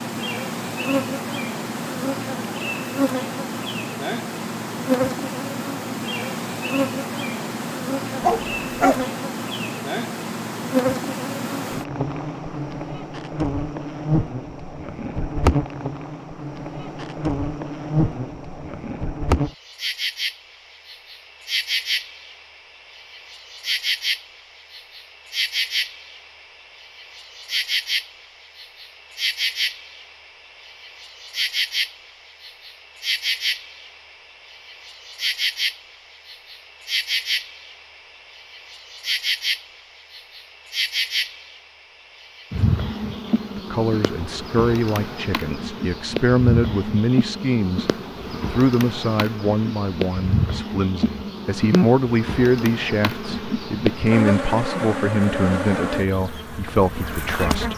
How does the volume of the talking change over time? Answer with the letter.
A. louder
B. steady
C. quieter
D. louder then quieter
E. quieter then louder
B.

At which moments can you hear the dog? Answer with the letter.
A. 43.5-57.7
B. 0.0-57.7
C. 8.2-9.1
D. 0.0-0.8
C.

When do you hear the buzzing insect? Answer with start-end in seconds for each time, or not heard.
0.0-57.7.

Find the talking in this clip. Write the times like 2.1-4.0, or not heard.
43.5-57.7.